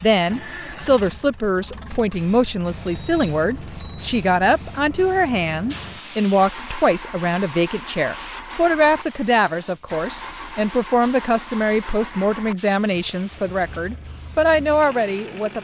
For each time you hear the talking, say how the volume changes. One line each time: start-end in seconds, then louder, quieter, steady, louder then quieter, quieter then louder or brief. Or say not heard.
0.0-15.6 steady.